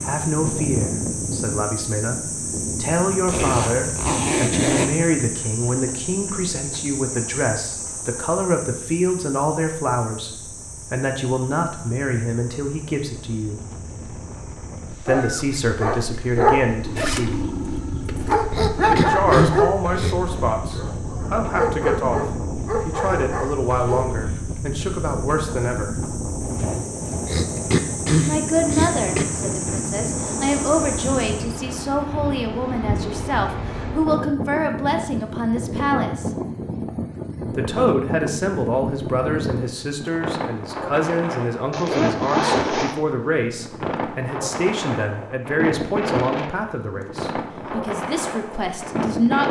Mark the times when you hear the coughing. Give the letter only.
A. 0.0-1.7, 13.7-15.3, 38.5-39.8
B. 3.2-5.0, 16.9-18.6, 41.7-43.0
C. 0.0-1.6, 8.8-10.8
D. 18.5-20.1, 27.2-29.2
D.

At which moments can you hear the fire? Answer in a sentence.
You can't hear the fire here.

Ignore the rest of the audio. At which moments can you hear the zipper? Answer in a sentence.
You can hear the zipper from 3.2 to 5.0 s, from 16.9 to 18.6 s and from 41.7 to 43.0 s.